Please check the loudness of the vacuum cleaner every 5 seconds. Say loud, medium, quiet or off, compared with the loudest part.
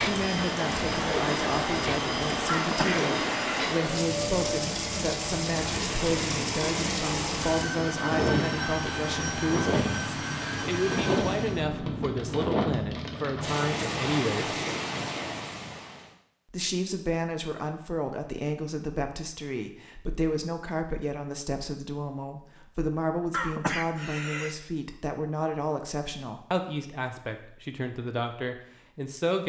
loud, loud, loud, off, off, off.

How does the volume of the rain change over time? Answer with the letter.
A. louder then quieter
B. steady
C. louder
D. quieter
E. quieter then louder
B.